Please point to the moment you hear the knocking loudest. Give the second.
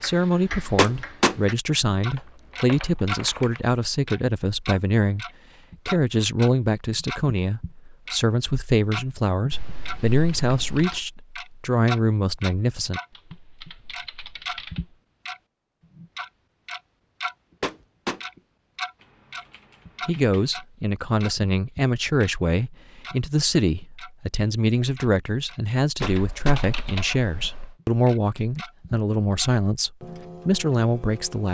1 s.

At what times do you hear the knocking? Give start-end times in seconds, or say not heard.
0.8-1.4, 17.6-18.2, 26.0-26.6.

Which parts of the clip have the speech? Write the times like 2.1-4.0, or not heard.
0.0-5.2, 5.8-13.0, 20.1-31.4.